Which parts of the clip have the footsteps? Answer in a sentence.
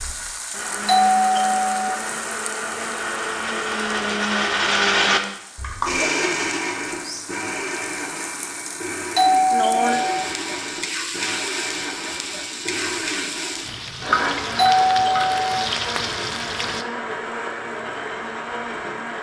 The footsteps can't be heard in this clip.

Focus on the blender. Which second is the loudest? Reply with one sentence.
The loudest moment of the blender is at 5 seconds.